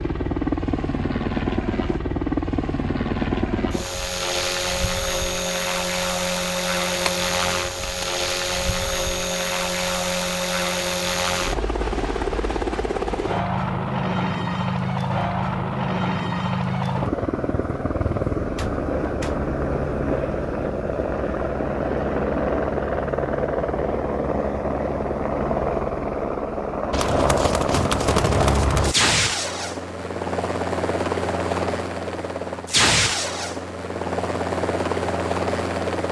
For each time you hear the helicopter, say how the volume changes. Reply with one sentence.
You can hear the helicopter from 0.0 to 36.0 s, at a steady volume.